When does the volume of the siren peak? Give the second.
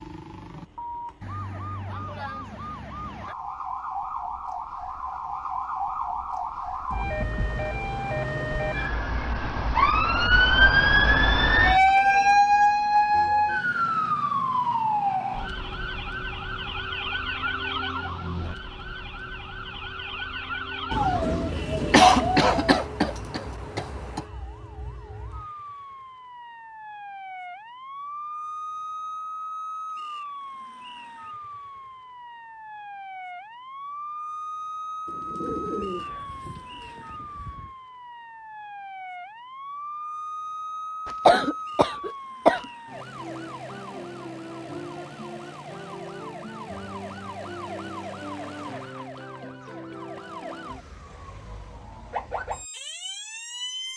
12 s.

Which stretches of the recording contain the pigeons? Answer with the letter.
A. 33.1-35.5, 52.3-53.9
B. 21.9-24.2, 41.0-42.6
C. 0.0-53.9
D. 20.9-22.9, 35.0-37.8
D.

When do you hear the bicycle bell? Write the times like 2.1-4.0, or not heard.
not heard.